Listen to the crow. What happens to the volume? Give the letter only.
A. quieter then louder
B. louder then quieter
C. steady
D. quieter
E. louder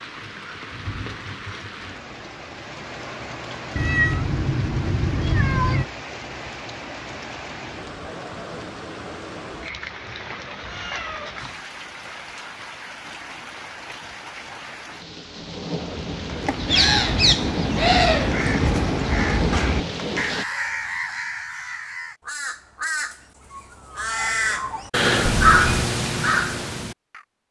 A.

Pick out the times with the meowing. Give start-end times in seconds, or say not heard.
3.8-5.8, 10.5-11.7, 25.2-25.9.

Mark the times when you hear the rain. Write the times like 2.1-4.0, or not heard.
0.0-20.4.